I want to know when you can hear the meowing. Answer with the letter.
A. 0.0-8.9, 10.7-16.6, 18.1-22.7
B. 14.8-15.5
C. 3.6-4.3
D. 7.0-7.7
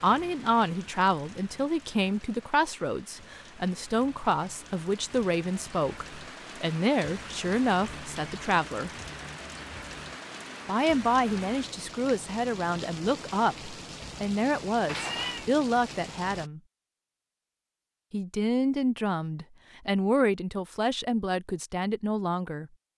B.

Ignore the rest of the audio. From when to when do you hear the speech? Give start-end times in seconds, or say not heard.
0.0-8.9, 10.7-16.6, 18.1-22.7.